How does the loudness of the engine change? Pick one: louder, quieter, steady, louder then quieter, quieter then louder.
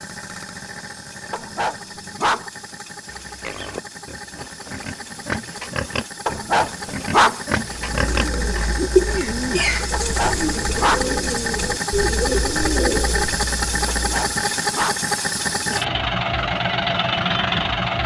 louder.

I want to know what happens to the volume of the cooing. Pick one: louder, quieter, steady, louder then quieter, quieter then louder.
quieter.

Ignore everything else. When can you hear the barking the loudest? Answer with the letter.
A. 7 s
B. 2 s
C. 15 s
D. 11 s
A.